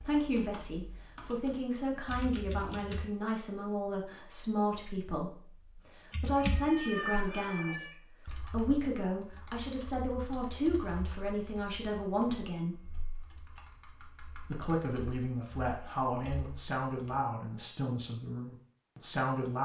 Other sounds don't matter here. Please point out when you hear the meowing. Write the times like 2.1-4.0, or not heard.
6.3-8.4.